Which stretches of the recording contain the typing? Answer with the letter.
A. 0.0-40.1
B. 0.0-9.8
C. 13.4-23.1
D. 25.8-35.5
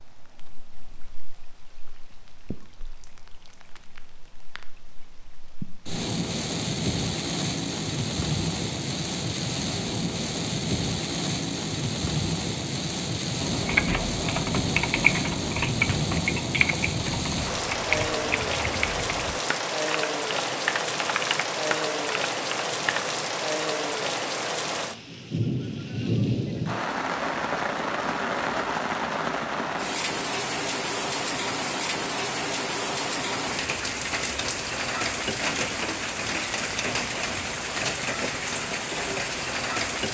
C.